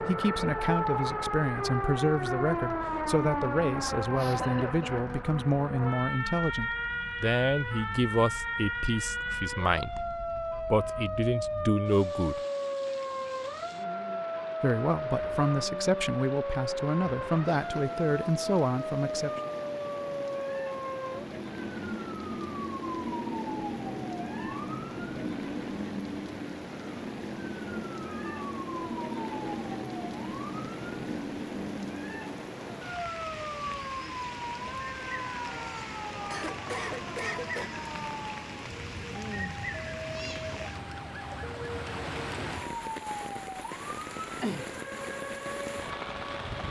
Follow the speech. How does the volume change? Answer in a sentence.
The loudness of the speech stays about the same.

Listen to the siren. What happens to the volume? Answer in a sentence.
The loudness of the siren goes down.